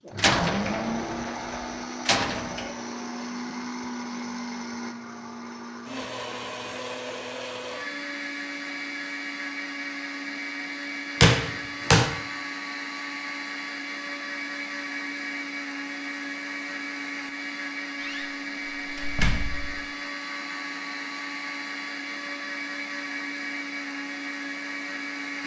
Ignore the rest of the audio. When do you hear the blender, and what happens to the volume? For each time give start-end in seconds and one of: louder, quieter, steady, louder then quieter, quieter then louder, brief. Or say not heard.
0.0-25.4 steady.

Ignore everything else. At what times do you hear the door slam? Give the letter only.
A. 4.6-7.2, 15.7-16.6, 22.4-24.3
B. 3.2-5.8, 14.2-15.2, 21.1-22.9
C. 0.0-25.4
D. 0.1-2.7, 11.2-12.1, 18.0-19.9
D.